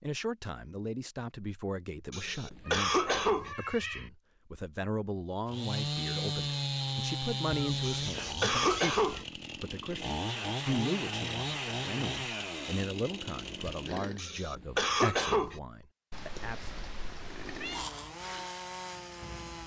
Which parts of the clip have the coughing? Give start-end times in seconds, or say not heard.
2.1-3.5, 7.8-9.2, 14.2-15.6.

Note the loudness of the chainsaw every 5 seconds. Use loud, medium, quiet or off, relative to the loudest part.
off, loud, loud, medium.